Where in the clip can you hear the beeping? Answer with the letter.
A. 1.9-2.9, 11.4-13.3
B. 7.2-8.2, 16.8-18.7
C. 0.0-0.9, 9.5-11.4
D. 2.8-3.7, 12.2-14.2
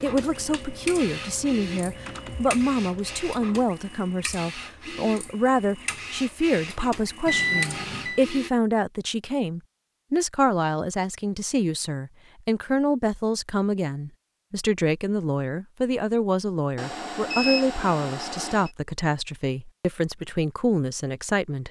B.